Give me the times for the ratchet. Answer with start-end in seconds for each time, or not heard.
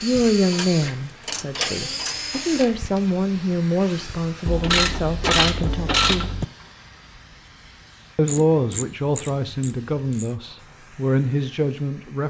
0.5-2.4, 4.5-6.5, 8.2-10.3.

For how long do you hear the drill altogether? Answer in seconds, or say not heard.
4 s.